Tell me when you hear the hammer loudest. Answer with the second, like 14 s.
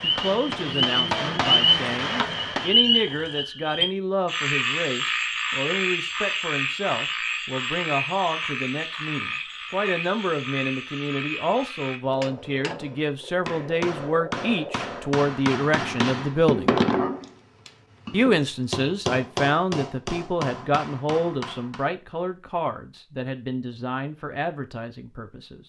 17 s.